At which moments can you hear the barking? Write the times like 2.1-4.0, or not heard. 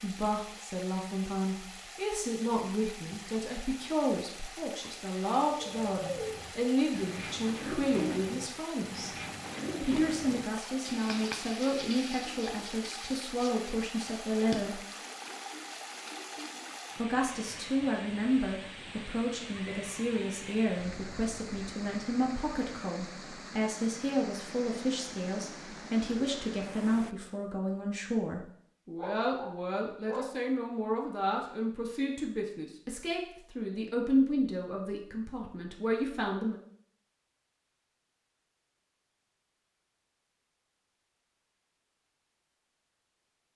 28.9-30.4.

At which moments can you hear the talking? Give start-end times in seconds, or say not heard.
0.0-9.1, 9.8-14.8, 16.9-36.5.